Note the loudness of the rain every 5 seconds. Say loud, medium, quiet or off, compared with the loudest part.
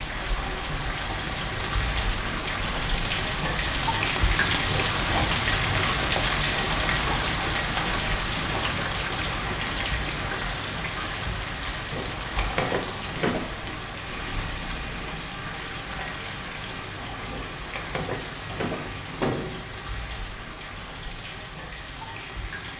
loud, loud, medium, medium, quiet.